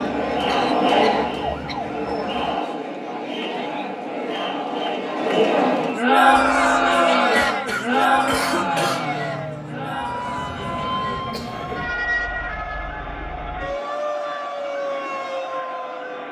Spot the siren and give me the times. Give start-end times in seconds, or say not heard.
0.0-2.6, 6.2-16.2.